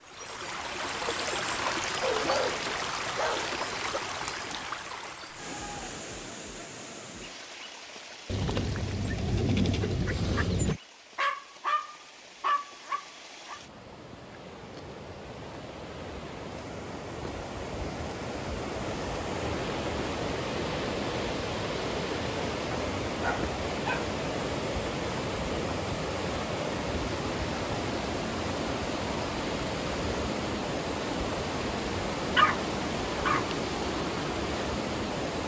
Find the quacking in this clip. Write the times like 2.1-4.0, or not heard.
8.2-10.8.